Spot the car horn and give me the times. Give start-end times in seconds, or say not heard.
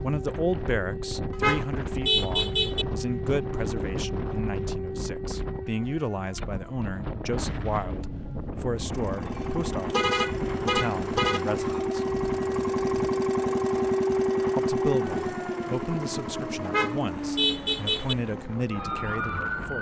1.3-2.9, 9.4-11.4, 16.6-18.1.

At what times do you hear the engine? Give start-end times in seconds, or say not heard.
8.7-18.3.